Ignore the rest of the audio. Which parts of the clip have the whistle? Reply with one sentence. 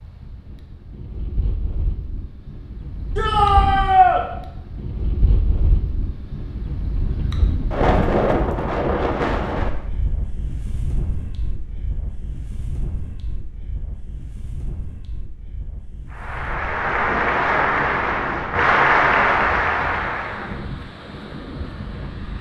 You can't hear the whistle here.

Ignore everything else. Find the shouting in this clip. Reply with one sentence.
The shouting can be heard from 3.1 to 4.2 s.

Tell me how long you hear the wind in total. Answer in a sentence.
You can hear the wind for 22 seconds altogether.